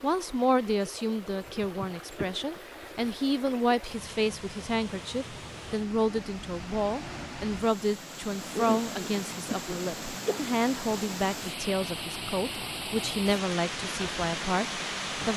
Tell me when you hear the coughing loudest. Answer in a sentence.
The volume of the coughing peaks at 9 seconds.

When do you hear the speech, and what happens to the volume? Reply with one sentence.
The speech can be heard from 0.0 to 15.3 s, at a steady volume.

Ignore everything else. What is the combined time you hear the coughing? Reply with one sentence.
The coughing can be heard for 3 seconds in total.